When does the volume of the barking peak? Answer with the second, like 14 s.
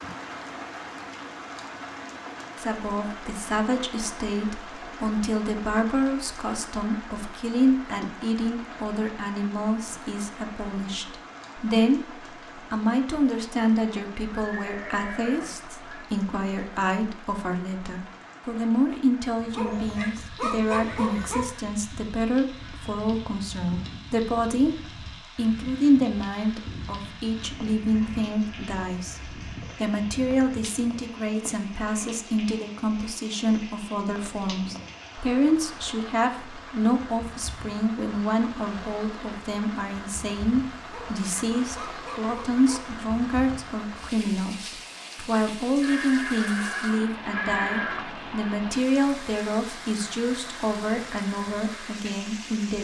21 s.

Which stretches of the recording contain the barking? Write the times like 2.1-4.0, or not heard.
19.5-21.4, 40.9-42.8.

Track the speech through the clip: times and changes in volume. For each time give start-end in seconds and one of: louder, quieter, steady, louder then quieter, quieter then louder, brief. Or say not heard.
2.6-52.7 steady.